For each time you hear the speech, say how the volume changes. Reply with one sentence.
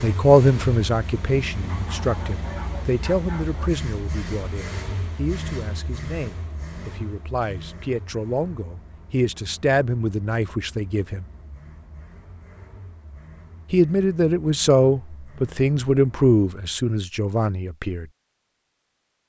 You can hear the speech from 0.0 to 11.2 s, getting quieter then louder; and from 13.7 to 18.1 s, getting quieter.